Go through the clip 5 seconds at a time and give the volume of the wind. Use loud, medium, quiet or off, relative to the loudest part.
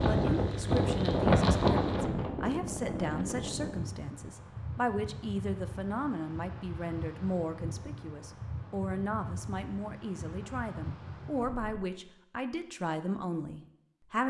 loud, quiet, quiet.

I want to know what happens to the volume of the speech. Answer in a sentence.
The volume of the speech stays about the same.